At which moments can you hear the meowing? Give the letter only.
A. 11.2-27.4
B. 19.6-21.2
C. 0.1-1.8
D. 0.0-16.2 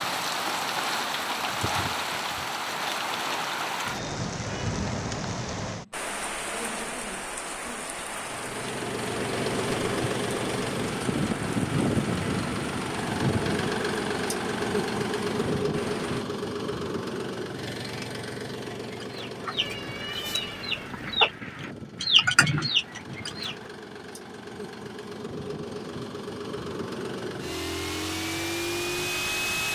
B.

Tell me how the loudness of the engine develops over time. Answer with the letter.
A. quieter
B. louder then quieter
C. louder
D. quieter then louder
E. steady
D.